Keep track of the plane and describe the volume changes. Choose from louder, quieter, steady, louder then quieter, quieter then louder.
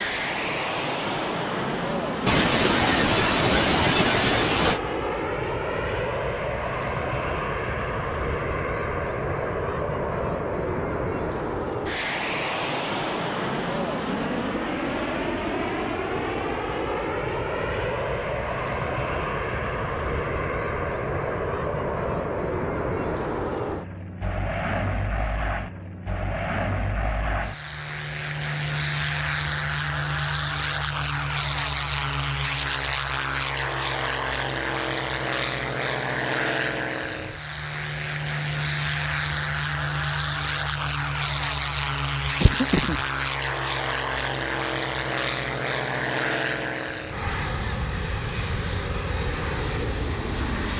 steady.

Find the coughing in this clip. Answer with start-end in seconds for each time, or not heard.
2.2-4.8, 42.2-43.0.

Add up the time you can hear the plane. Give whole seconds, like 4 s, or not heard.
51 s.